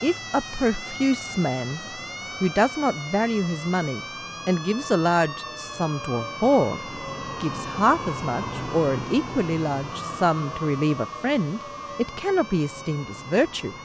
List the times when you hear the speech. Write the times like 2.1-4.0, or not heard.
0.0-1.8, 2.4-6.8, 7.4-13.7.